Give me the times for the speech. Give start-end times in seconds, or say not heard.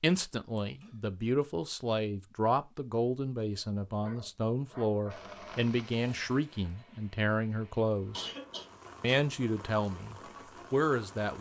0.0-8.3, 9.0-11.3.